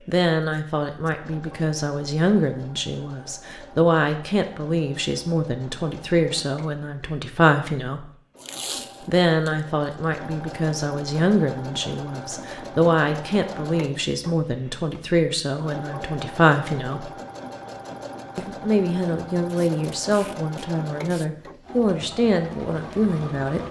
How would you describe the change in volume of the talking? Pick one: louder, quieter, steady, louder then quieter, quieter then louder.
steady.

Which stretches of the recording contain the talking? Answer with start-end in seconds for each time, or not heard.
0.1-8.1, 9.1-17.1, 18.4-23.6.